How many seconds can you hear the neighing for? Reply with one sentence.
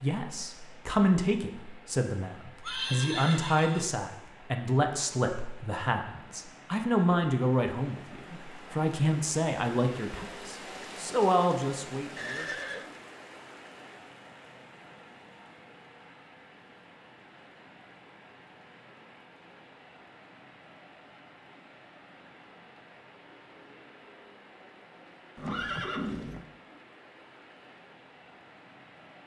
You can hear the neighing for 3 seconds altogether.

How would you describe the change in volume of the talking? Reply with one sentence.
The loudness of the talking stays about the same.